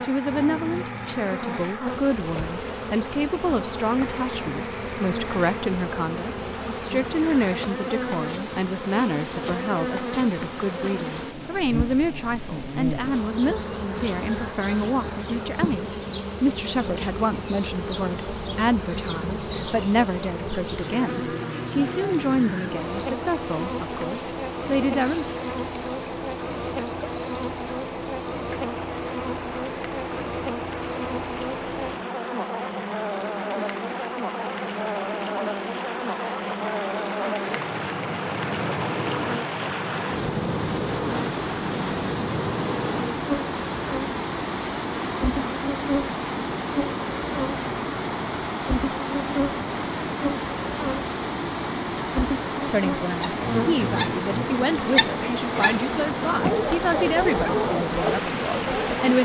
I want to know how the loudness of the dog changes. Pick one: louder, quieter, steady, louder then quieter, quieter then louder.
louder.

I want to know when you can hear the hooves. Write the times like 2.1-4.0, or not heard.
not heard.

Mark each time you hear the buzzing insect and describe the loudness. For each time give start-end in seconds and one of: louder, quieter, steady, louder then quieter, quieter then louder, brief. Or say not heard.
0.0-59.1 steady.